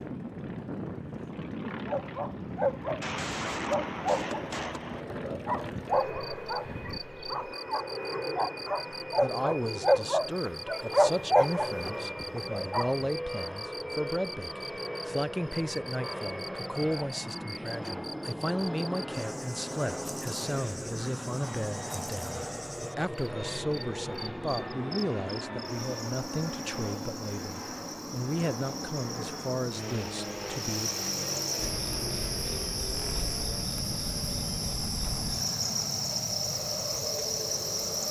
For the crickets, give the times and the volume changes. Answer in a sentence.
You can hear the crickets from 5.9 to 38.0 s, getting louder.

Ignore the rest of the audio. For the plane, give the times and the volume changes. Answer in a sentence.
The plane can be heard from 0.0 to 38.0 s, at a steady volume.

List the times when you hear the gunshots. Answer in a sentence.
You can hear the gunshots from 3.0 to 5.0 s.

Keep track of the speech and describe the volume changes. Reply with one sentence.
The loudness of the speech stays about the same.